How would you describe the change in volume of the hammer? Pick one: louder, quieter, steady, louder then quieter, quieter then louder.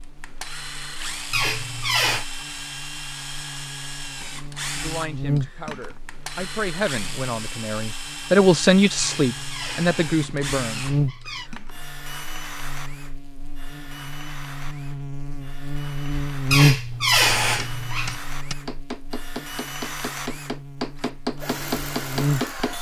louder.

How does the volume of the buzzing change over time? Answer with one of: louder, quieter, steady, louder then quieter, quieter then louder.
louder then quieter.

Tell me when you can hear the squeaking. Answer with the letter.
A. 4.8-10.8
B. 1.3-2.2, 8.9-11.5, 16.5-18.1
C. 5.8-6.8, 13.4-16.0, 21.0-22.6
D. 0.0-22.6
B.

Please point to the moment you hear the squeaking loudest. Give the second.
17 s.